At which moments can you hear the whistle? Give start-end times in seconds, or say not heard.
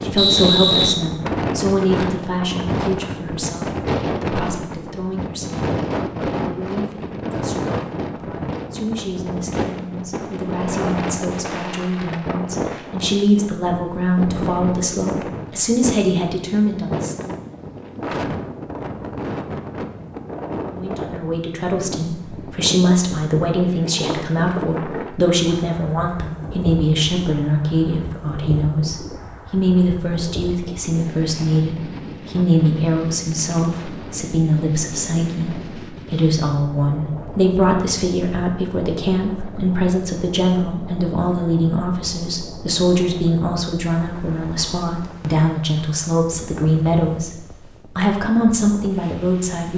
0.1-1.6.